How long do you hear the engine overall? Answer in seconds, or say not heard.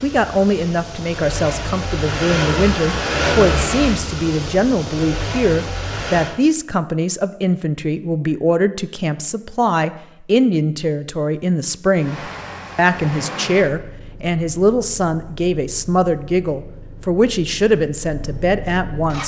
14 s.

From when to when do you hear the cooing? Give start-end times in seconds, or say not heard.
not heard.